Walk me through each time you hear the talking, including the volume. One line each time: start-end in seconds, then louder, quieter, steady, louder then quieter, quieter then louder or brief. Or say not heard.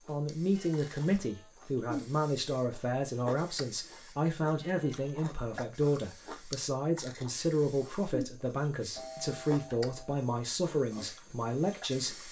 0.1-12.2 steady.